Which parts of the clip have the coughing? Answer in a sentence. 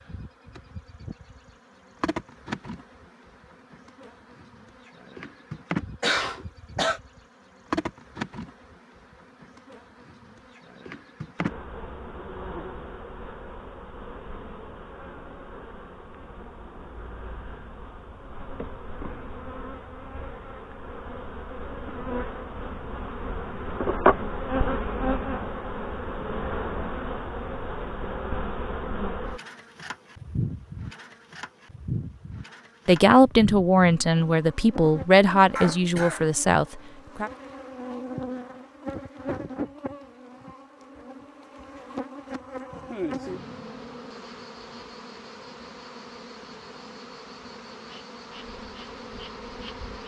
You can hear the coughing from 6.0 to 7.0 s and from 35.5 to 36.2 s.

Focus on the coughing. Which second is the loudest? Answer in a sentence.
The volume of the coughing peaks at 6 seconds.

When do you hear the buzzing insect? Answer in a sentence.
The buzzing insect can be heard from 0.0 to 50.0 s.